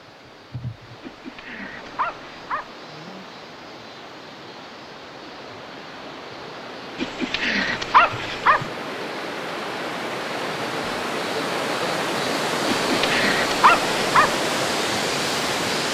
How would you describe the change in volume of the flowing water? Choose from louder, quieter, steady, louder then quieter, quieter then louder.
louder.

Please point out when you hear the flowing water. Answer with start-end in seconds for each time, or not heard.
0.0-15.8.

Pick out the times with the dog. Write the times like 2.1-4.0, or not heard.
1.0-2.7, 7.0-8.7, 12.8-14.3.